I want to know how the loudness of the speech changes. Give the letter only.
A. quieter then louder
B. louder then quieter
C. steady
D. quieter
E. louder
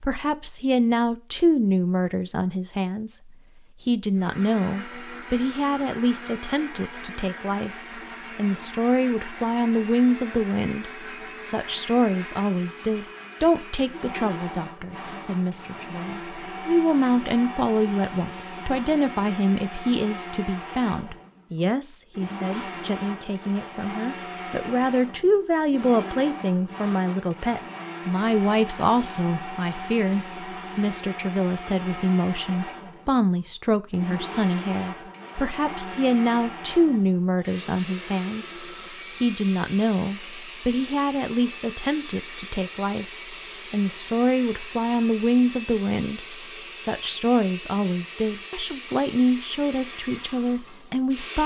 C.